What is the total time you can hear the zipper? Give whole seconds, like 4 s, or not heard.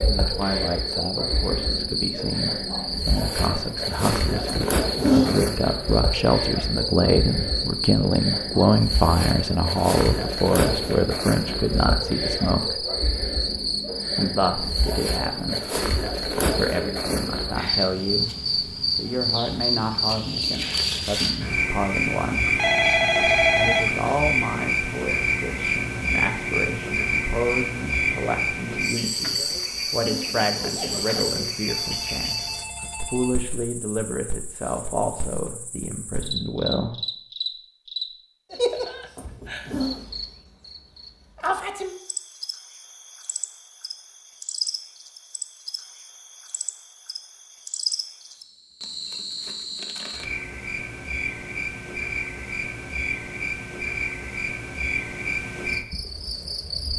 4 s.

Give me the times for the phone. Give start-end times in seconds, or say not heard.
22.4-24.1, 31.6-33.5.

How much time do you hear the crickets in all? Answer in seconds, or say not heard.
57 s.